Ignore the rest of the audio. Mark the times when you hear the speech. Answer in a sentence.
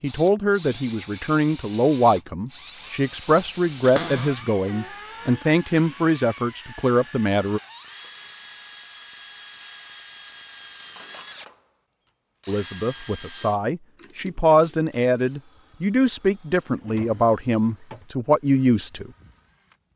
You can hear the speech from 0.0 to 7.6 s and from 12.4 to 19.1 s.